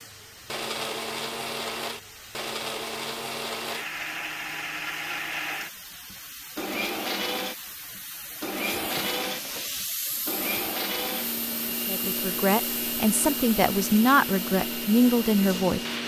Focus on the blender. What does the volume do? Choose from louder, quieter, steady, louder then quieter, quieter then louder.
steady.